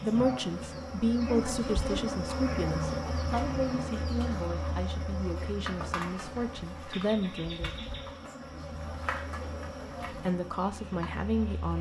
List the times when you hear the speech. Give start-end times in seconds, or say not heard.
0.0-7.8, 10.1-11.7.